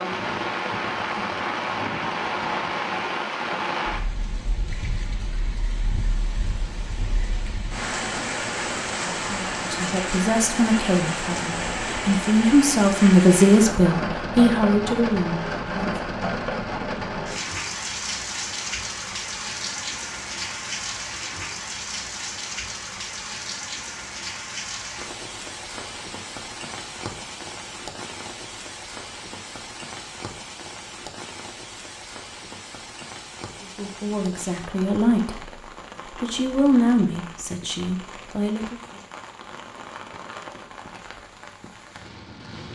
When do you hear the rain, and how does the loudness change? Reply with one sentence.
The rain can be heard from 0.0 to 42.6 s, getting quieter.